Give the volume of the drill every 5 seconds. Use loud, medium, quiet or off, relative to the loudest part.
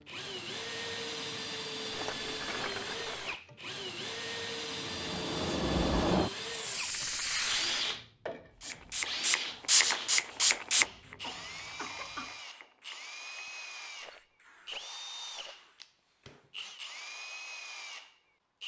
loud, loud, medium, medium.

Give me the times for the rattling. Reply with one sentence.
The rattling can be heard from 1.9 to 3.4 s, from 6.8 to 7.8 s and from 14.0 to 15.7 s.